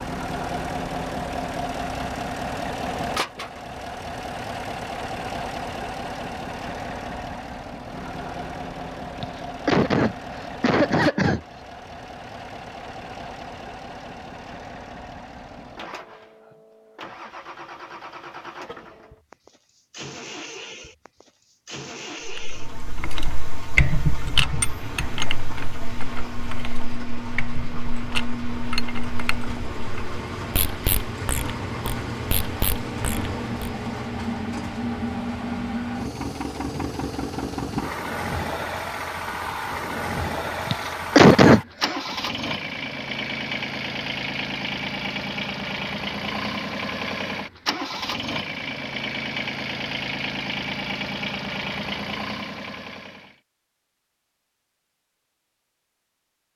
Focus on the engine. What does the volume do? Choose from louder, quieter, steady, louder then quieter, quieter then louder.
quieter then louder.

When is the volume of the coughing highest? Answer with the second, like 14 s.
41 s.